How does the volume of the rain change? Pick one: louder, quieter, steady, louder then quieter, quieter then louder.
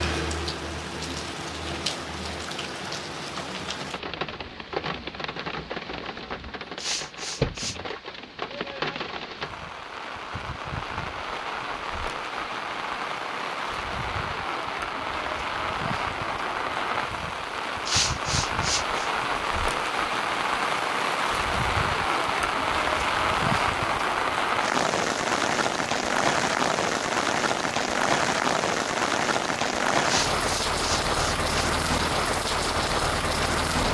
louder.